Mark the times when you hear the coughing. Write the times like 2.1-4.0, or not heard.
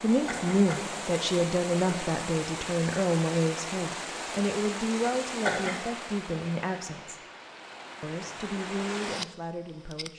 0.1-0.9, 5.2-5.8.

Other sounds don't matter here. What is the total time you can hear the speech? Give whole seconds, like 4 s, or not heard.
9 s.